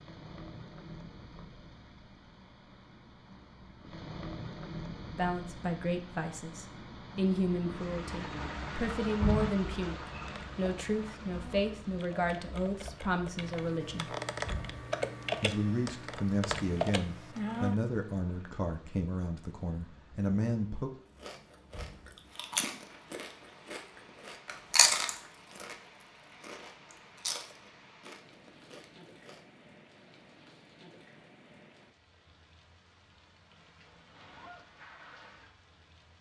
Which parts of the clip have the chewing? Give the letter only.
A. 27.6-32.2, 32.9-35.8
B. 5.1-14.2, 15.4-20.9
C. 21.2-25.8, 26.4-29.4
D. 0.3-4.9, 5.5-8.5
C.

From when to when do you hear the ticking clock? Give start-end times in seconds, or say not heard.
not heard.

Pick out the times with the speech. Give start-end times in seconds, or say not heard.
5.1-14.2, 15.4-20.9.